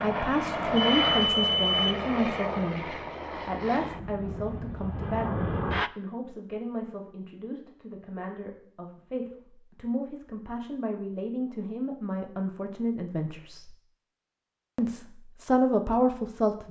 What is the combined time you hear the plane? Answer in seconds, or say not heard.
6 s.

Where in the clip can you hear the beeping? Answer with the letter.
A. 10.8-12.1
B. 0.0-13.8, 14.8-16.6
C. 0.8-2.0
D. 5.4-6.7
C.